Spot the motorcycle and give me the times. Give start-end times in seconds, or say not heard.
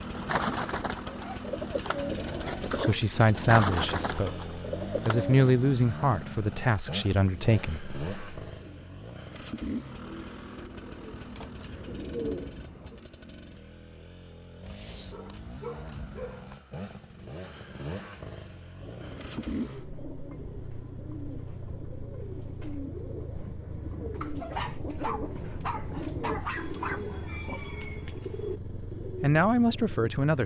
0.0-30.4.